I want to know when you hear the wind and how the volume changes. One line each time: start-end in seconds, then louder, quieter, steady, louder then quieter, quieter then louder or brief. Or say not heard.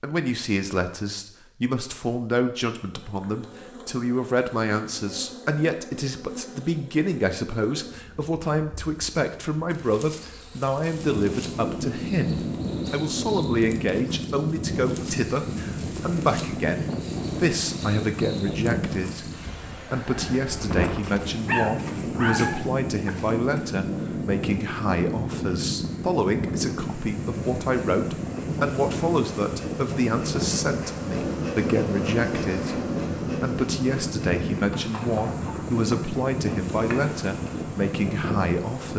10.9-38.9 steady.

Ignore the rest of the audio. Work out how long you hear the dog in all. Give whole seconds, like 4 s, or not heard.
2 s.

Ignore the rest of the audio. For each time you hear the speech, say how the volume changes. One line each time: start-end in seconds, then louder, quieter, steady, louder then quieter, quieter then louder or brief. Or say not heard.
0.0-38.9 steady.